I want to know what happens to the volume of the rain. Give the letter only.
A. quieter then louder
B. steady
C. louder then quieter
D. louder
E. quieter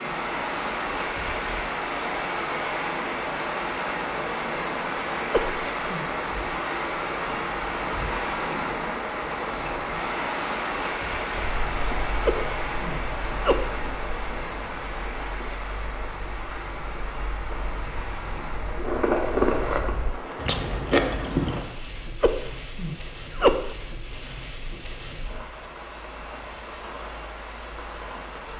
E.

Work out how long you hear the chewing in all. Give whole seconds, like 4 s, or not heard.
10 s.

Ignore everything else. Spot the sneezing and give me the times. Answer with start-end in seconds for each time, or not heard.
5.3-6.0, 12.2-13.8, 22.2-23.7.